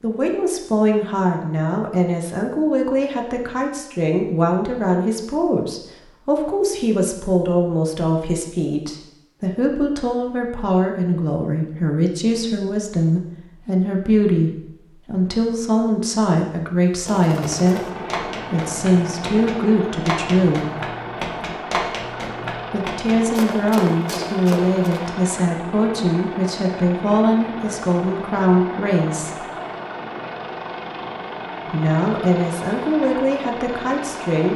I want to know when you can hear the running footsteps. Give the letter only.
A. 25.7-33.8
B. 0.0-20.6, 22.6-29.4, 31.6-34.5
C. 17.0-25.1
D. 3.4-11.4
C.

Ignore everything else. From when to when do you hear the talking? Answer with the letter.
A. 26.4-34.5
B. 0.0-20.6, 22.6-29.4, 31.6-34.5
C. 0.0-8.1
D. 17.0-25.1
B.